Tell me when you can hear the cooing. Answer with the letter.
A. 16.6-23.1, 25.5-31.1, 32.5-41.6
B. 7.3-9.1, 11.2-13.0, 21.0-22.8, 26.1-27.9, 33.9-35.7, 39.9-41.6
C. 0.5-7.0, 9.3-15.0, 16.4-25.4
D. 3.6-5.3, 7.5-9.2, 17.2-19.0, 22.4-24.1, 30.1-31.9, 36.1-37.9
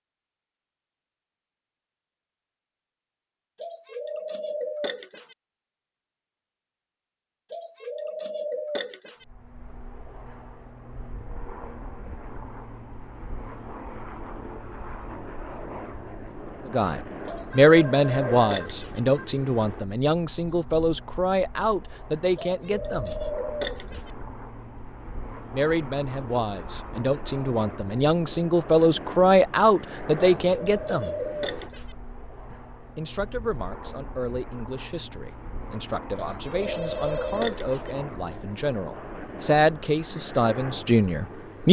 D.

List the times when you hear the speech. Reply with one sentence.
The speech can be heard from 16.6 to 23.1 s, from 25.5 to 31.1 s and from 32.5 to 41.6 s.